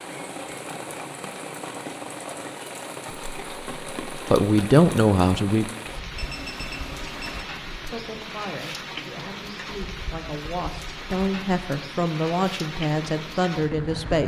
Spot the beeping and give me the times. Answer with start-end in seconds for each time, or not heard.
6.2-7.5.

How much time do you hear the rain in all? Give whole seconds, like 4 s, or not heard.
14 s.